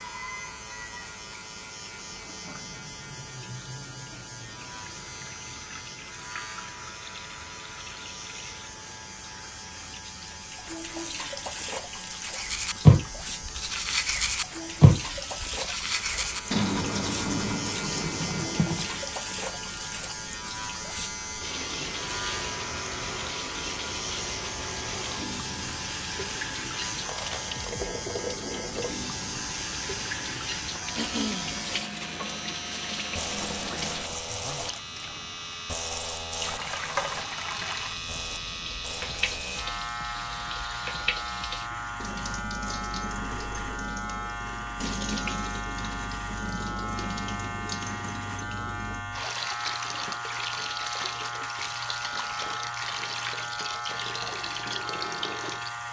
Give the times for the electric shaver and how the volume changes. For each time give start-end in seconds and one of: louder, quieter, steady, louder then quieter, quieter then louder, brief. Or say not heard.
0.0-55.8 louder.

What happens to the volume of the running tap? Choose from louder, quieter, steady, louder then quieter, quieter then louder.
louder.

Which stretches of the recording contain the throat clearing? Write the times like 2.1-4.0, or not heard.
30.9-31.6.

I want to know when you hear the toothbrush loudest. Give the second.
13 s.